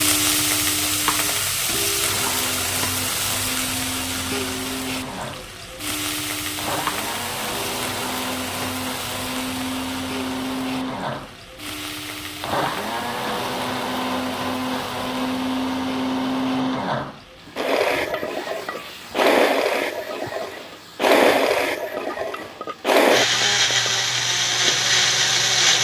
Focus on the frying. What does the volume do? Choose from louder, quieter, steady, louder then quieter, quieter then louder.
quieter.